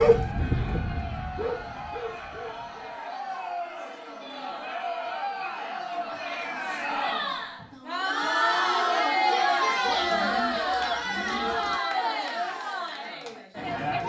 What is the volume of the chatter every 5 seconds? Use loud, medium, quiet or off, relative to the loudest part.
medium, loud, loud.